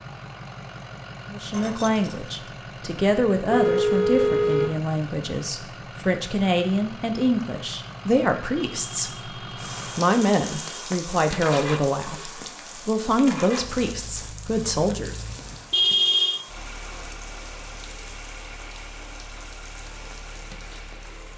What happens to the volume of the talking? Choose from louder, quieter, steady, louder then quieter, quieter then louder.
steady.